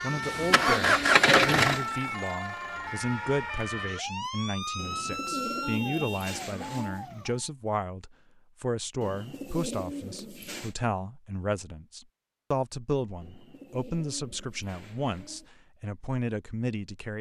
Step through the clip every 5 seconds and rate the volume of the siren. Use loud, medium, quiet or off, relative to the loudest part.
loud, loud, off, off.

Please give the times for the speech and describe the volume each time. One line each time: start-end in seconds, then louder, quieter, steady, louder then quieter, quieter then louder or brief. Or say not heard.
0.0-17.1 steady.